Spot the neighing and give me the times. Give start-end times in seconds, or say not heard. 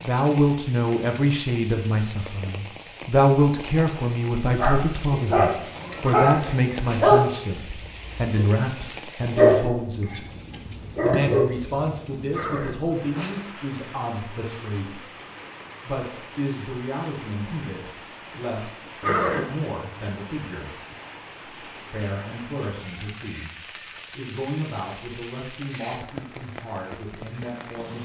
6.0-7.1, 12.3-13.4, 19.0-19.6.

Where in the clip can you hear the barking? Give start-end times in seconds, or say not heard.
4.5-11.4.